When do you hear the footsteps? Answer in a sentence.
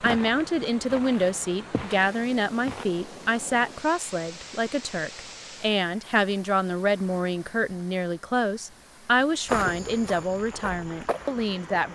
The footsteps can be heard from 0.0 to 2.9 s and from 9.4 to 11.8 s.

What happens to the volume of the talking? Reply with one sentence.
The loudness of the talking stays about the same.